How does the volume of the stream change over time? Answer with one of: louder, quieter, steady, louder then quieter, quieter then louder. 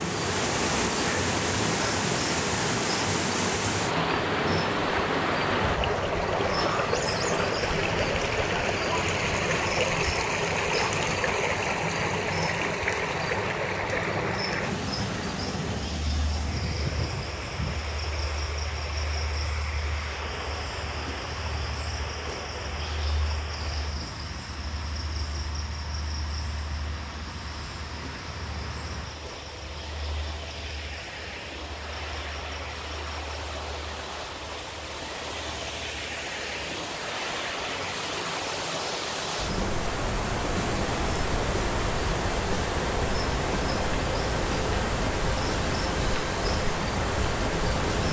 quieter then louder.